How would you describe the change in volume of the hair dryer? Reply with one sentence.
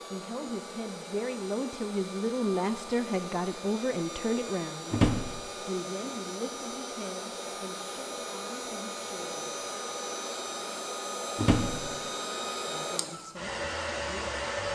The loudness of the hair dryer goes up.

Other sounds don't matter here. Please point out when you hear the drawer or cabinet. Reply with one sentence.
The drawer or cabinet can be heard from 4.9 to 5.5 s and from 11.3 to 11.9 s.